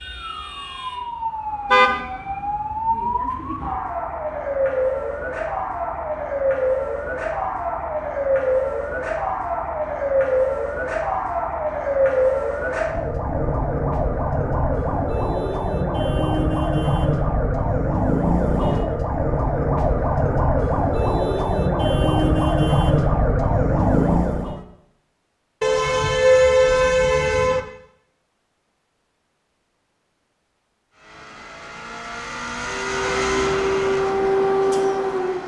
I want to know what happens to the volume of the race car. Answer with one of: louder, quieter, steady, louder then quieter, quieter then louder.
louder then quieter.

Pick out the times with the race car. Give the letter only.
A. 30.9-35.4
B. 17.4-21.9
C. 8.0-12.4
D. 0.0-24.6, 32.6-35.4
A.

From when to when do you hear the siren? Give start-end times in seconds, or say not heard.
0.0-24.6, 32.6-35.4.